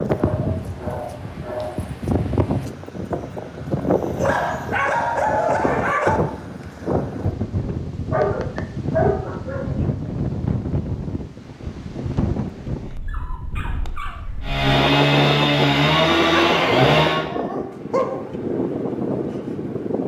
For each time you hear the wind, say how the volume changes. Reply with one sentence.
You can hear the wind from 0.0 to 20.0 s, at a steady volume.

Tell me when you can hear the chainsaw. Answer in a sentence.
The chainsaw can be heard from 14.4 to 17.2 s.